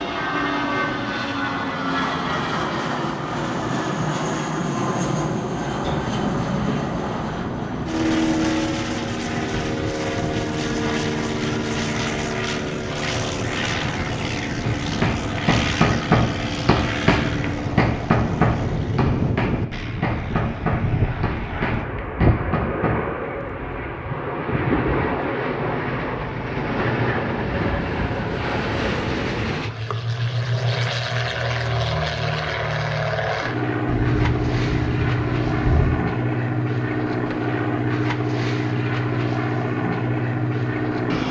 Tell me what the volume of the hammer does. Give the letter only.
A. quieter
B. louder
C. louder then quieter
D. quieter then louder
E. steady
A.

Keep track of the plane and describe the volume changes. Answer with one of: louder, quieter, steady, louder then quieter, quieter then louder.
steady.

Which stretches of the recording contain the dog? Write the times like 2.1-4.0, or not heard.
not heard.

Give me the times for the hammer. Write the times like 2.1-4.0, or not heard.
14.6-23.0.